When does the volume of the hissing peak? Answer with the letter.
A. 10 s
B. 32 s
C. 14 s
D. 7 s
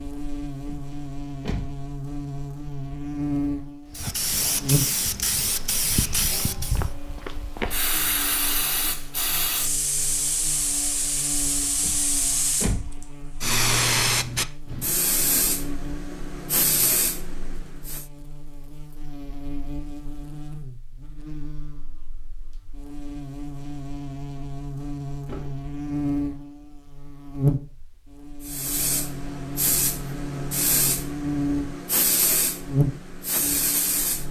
C.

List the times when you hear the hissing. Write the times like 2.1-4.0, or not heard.
3.9-18.1, 28.4-34.2.